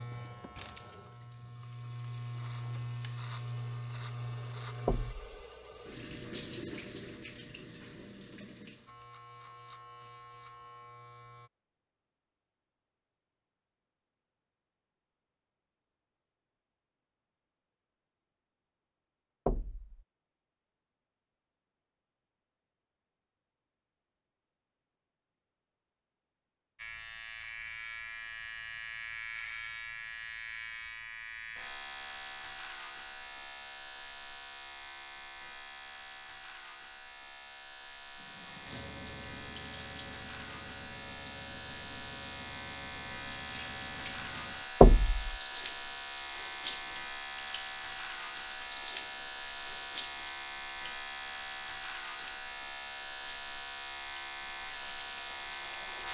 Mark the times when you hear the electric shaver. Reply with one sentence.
You can hear the electric shaver from 0.0 to 5.2 s, from 8.8 to 11.5 s and from 26.8 to 56.0 s.